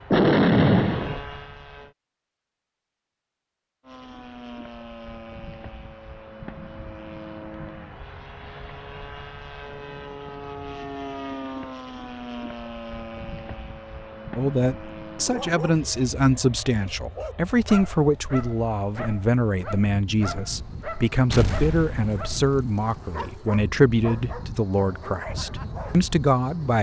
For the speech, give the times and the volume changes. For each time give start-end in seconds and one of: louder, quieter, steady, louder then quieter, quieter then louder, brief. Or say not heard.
14.3-26.7 steady.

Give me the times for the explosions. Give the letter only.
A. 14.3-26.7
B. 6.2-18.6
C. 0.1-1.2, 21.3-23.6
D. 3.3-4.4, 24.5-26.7
C.